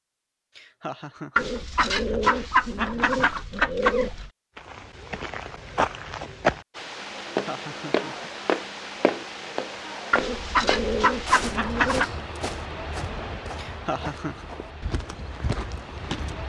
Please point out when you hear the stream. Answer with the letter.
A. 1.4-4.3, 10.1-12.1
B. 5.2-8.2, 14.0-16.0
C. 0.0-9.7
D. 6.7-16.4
D.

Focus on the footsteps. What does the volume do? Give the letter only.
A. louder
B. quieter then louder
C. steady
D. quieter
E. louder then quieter
D.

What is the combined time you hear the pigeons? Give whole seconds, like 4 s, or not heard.
5 s.